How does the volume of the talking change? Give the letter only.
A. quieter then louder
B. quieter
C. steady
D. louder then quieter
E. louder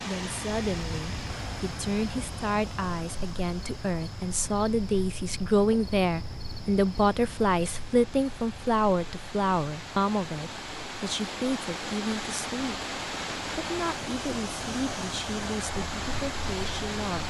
D.